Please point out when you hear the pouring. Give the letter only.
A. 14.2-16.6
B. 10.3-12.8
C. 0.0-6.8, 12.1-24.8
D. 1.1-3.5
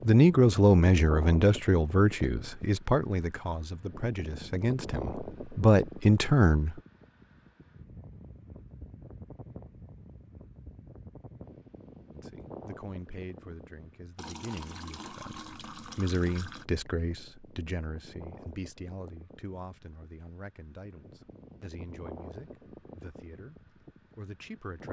A.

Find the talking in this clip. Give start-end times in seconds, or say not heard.
0.0-6.8, 12.1-24.8.